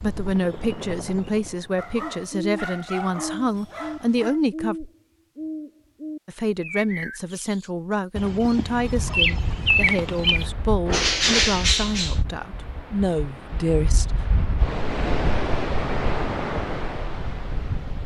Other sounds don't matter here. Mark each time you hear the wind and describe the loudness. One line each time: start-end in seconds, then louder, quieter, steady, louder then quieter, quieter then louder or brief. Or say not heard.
8.8-18.0 louder.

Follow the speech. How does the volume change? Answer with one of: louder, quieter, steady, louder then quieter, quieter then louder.
steady.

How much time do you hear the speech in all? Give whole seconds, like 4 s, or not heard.
13 s.